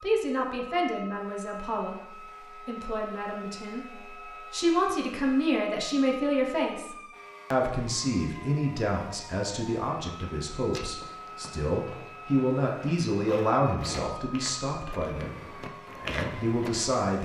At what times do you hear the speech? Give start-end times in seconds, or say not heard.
0.0-6.9, 7.5-15.3, 15.9-17.2.